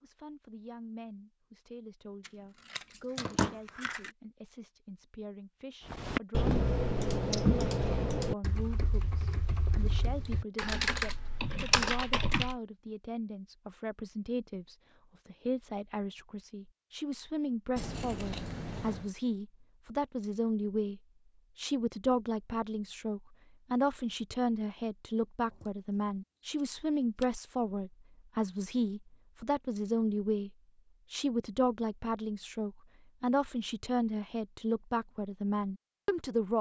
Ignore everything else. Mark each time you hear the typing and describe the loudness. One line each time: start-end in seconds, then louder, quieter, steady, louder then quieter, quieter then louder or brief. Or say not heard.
5.8-12.6 quieter then louder.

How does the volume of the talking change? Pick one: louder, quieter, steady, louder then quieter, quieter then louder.
louder.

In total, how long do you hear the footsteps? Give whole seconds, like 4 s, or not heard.
not heard.